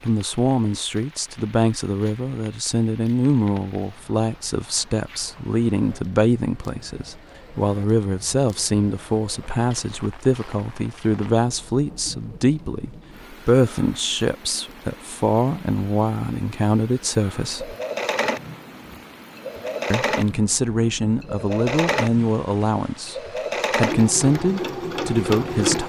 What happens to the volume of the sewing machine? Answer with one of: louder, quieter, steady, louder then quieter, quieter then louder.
steady.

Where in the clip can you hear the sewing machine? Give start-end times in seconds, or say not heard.
17.4-25.8.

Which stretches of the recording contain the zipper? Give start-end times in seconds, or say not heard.
not heard.